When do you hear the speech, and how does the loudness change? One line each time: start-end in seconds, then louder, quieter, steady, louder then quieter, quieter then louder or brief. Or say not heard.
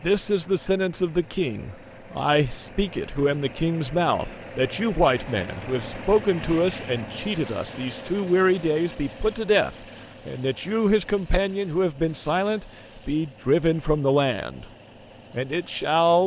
0.0-14.7 steady
15.3-16.2 brief.